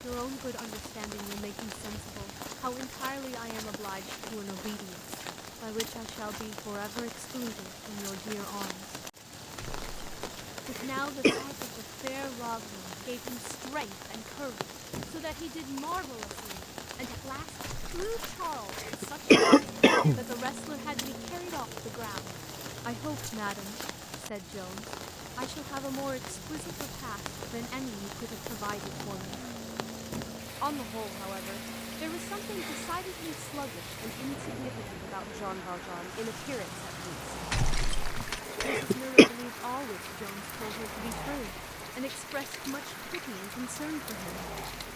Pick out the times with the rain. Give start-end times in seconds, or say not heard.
0.0-44.9.